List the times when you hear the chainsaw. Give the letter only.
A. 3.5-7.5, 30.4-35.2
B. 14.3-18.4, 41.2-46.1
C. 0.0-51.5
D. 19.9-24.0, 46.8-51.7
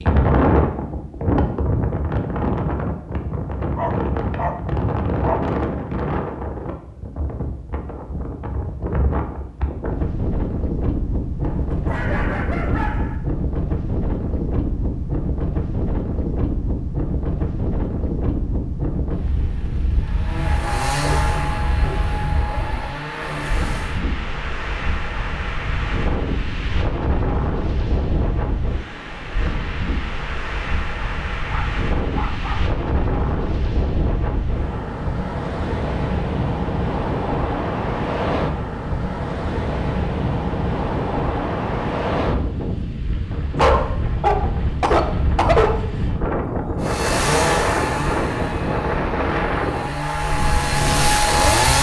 D.